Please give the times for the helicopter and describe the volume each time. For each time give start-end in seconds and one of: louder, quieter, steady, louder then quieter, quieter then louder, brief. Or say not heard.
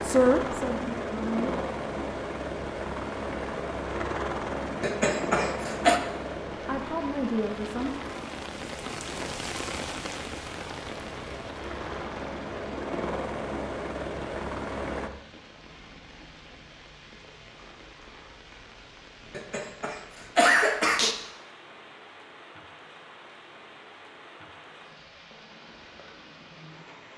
0.0-15.1 quieter then louder.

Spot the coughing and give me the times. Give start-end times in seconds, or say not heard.
4.8-6.0, 19.3-21.1.